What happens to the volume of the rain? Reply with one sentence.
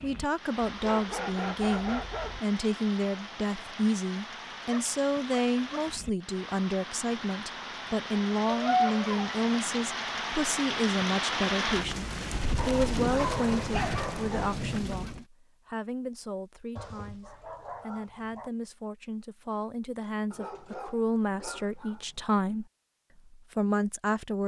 The loudness of the rain goes up.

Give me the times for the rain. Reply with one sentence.
The rain can be heard from 0.0 to 15.2 s.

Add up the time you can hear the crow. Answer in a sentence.
You can't hear the crow here.